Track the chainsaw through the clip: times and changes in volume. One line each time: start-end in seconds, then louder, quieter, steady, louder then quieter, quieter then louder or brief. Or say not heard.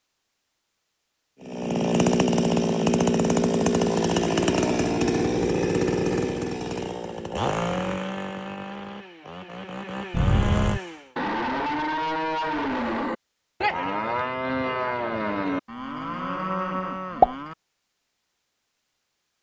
1.4-11.1 quieter.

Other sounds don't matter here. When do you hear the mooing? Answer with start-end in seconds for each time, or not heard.
10.1-17.6.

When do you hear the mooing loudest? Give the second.
17 s.